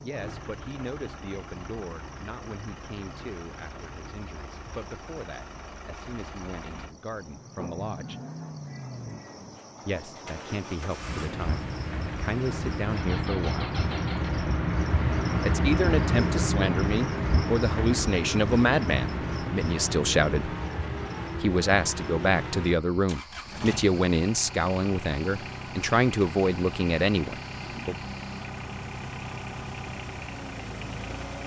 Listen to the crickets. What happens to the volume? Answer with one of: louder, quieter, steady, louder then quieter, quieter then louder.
louder then quieter.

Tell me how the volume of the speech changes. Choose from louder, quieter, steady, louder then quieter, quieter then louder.
louder.